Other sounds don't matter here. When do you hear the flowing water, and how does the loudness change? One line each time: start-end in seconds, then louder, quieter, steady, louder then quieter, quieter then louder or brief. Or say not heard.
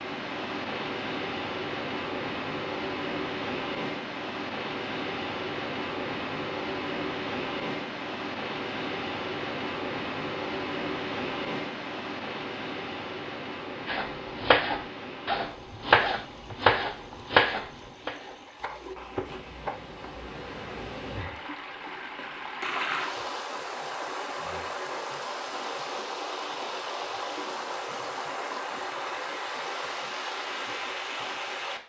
0.0-31.8 quieter then louder.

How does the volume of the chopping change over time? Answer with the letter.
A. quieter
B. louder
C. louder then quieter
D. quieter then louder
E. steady
A.